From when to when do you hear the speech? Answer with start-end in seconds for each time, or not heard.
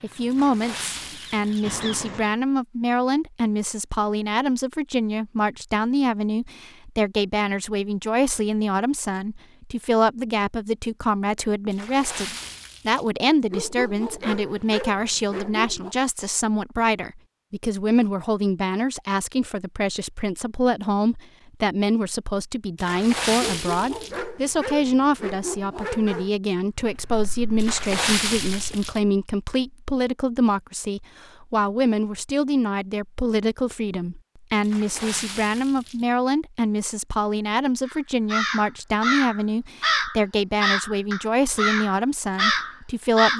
0.0-43.3.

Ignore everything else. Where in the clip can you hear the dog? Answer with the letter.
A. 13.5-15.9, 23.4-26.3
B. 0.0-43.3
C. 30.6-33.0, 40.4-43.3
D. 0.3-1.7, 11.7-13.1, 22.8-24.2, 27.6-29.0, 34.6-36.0
A.